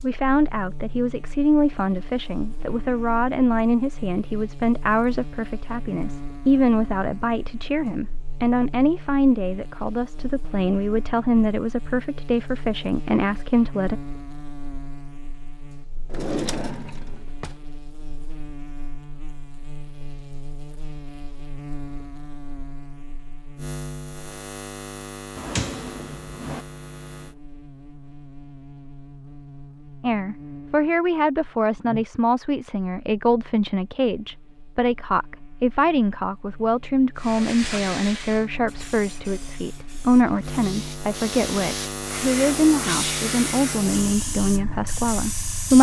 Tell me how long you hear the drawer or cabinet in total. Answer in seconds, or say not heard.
3 s.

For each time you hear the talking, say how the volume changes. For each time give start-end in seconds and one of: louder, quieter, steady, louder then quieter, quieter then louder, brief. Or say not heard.
0.0-14.0 steady
30.0-45.7 steady.